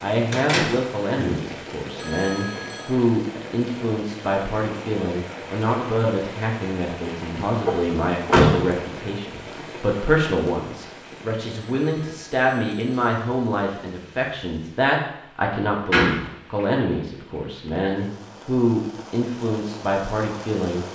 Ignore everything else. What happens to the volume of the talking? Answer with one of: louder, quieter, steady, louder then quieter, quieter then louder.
steady.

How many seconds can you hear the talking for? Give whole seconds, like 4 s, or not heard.
21 s.